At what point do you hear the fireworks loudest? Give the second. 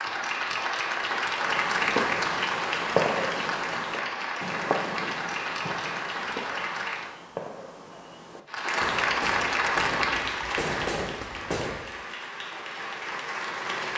3 s.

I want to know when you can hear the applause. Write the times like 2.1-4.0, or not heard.
0.0-7.2, 8.4-13.9.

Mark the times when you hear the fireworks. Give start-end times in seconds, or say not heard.
1.3-11.9.